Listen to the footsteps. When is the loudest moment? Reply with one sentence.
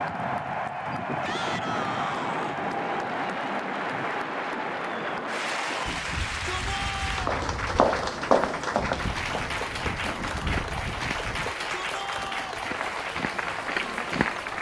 The loudest moment of the footsteps is at 8 seconds.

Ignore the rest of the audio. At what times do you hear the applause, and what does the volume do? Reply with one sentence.
The applause can be heard from 0.0 to 14.5 s, at a steady volume.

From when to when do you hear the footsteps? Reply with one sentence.
The footsteps can be heard from 7.2 to 14.4 s.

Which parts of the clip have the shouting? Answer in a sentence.
The shouting can be heard from 1.2 to 2.6 s, from 6.0 to 7.2 s and from 11.3 to 12.7 s.